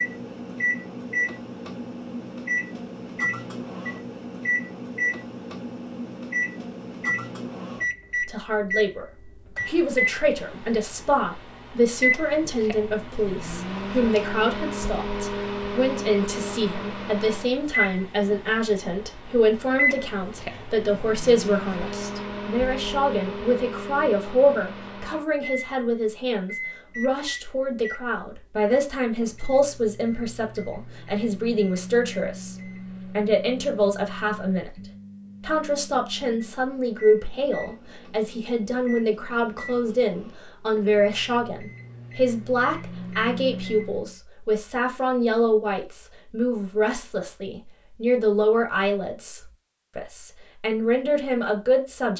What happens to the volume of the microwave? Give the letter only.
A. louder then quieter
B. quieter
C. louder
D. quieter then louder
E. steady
B.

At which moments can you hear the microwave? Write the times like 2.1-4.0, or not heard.
0.0-44.1.